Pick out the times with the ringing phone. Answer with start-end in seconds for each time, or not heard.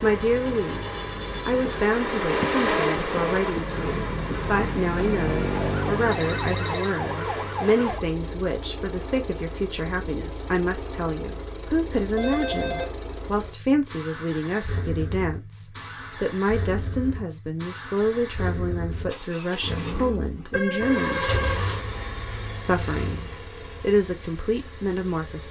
6.0-6.9, 12.2-12.9, 20.5-21.6.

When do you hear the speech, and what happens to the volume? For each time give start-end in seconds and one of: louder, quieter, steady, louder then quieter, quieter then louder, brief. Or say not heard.
0.0-21.2 steady
22.6-25.4 brief.